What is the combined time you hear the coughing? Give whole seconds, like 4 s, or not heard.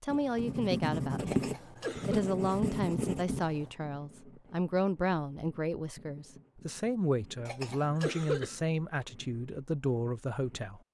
2 s.